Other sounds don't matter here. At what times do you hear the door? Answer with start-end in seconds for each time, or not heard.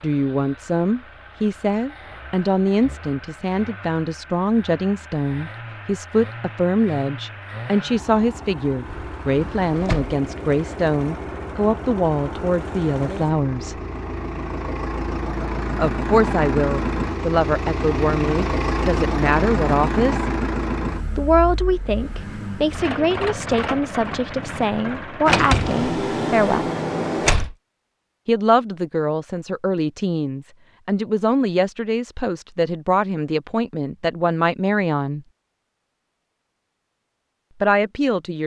8.8-10.2, 25.2-27.6.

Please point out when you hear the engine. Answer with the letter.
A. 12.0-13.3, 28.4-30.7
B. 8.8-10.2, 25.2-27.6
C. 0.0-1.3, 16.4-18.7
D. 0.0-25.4
D.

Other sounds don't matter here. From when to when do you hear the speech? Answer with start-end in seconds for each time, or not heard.
0.0-13.8, 15.8-20.3, 21.1-26.7, 28.2-35.2, 37.6-38.4.